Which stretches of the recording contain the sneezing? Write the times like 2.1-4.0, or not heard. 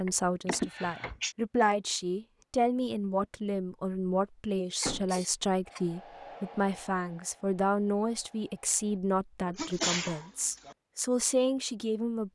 0.5-1.4, 4.8-5.8, 9.6-10.8.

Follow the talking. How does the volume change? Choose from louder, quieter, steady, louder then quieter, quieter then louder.
steady.